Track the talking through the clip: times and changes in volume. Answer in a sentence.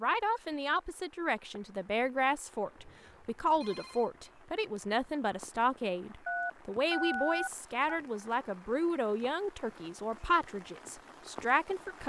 The talking can be heard from 0.0 to 12.0 s, at a steady volume.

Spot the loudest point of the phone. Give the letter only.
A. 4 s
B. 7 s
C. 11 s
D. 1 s
B.